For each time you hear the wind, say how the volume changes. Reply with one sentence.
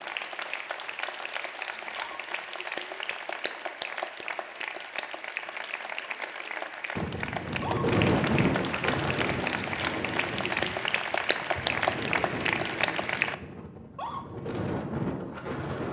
You can hear the wind from 7.0 to 15.8 s, getting quieter then louder.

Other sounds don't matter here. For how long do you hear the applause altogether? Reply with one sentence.
The applause can be heard for 13 seconds in total.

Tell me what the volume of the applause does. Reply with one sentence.
The volume of the applause goes up.